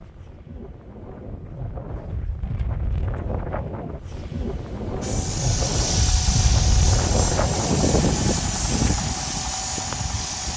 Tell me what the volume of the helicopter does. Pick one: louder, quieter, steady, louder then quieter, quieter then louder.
steady.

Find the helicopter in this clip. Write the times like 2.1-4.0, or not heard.
5.0-10.5.